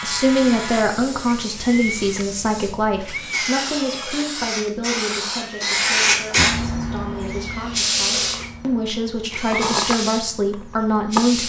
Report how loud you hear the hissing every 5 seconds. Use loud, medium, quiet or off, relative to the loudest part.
medium, loud, medium.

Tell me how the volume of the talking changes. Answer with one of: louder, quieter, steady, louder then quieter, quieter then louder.
quieter then louder.